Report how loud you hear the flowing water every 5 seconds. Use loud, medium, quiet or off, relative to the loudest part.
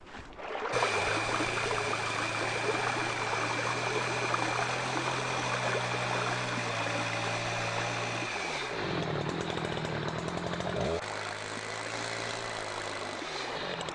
loud, loud, medium.